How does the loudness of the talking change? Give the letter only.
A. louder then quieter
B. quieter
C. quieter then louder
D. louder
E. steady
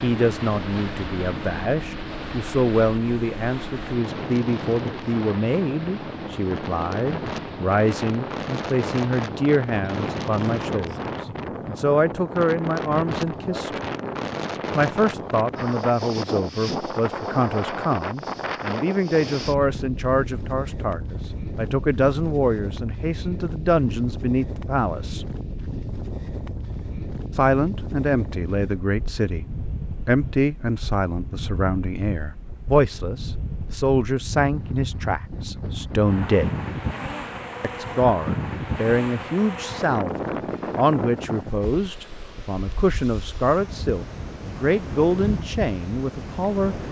E.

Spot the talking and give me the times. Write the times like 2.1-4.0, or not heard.
0.0-13.9, 14.8-25.3, 27.4-36.5, 37.6-46.8.